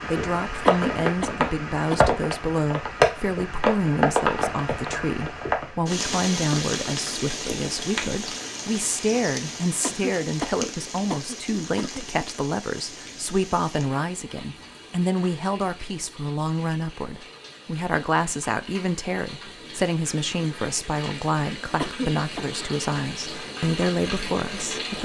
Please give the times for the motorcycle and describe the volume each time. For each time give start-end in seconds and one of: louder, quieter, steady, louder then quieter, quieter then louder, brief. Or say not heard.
not heard.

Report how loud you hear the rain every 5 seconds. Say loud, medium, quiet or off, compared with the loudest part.
loud, medium, quiet, quiet, medium.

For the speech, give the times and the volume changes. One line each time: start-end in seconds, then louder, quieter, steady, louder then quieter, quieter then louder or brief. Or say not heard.
0.1-25.0 steady.